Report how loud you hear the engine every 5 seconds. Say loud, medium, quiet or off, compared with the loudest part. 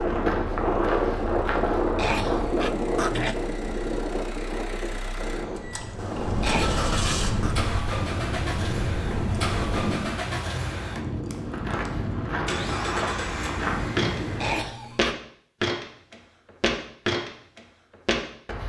medium, loud, loud, off.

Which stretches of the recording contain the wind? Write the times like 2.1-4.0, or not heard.
0.0-10.2.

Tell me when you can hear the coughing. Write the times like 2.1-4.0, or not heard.
1.9-3.5, 6.4-7.5, 14.3-15.2.